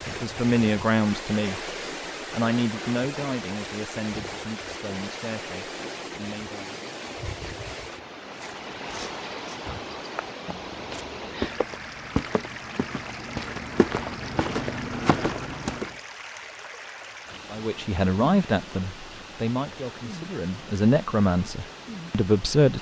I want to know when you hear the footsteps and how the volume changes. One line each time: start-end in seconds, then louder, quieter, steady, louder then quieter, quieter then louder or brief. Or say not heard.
8.2-15.9 louder.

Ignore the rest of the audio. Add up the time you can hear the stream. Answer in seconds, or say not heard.
23 s.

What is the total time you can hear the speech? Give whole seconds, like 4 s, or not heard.
11 s.